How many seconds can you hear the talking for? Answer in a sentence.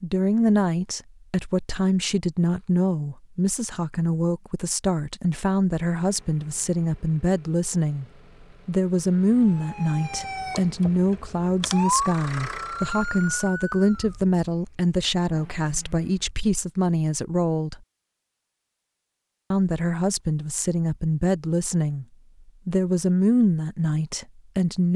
You can hear the talking for 22 seconds altogether.